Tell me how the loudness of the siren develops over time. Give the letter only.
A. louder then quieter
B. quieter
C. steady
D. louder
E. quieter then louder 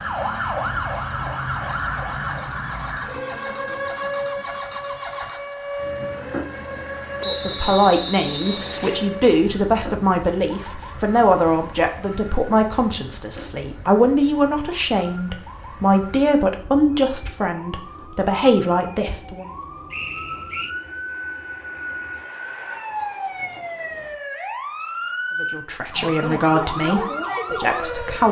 E.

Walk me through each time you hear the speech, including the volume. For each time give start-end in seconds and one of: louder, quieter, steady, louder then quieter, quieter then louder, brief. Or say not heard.
7.2-19.4 steady
25.4-28.2 brief.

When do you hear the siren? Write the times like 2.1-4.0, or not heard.
0.0-28.2.